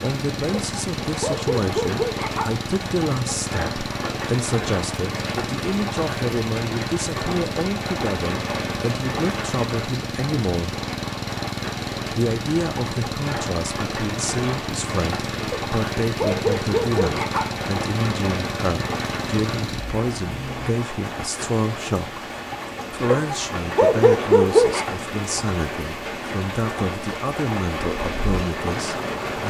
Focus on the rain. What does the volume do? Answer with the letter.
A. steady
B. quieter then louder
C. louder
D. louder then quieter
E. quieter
A.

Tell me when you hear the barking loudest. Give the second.
24 s.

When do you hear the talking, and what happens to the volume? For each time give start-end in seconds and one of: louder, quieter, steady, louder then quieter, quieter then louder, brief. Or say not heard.
0.0-10.8 steady
12.1-22.2 steady
22.9-29.4 steady.